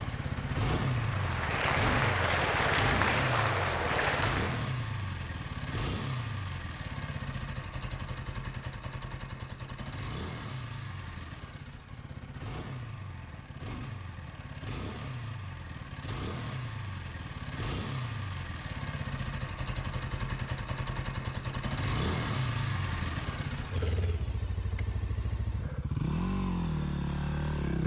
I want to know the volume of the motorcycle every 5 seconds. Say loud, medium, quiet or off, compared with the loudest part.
loud, medium, medium, medium, loud, loud.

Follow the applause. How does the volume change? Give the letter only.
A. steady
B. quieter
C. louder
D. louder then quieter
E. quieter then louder
C.